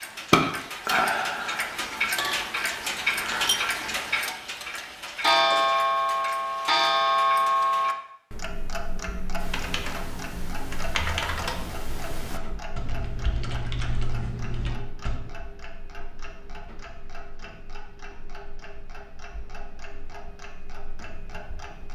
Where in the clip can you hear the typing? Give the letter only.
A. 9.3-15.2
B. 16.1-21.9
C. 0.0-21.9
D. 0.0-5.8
A.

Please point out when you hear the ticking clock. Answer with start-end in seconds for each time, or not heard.
0.0-21.9.